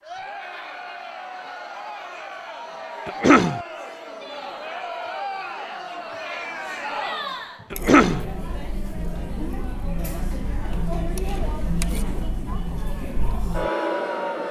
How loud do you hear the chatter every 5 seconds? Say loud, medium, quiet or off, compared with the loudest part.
medium, loud, loud.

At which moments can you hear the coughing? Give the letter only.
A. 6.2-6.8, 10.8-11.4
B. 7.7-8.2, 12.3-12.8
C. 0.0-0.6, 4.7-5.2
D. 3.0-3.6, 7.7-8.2
D.